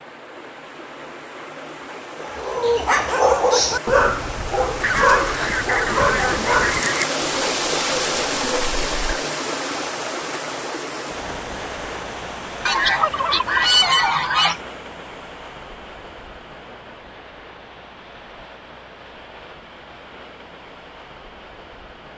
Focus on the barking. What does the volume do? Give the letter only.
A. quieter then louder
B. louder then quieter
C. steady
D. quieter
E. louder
D.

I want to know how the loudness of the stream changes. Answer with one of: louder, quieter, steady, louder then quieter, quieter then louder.
louder then quieter.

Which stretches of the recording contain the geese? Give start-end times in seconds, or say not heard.
4.8-7.1, 12.7-14.6.